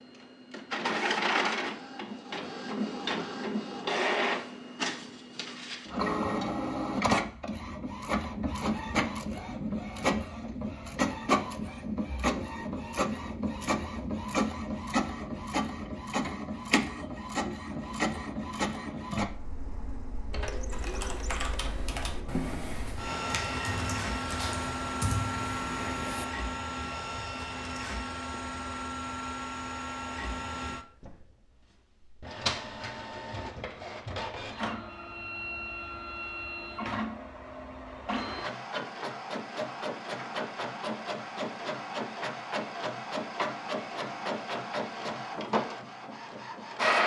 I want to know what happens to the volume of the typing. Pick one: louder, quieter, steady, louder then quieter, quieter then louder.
steady.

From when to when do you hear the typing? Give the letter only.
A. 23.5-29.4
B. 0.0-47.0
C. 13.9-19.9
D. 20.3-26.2
D.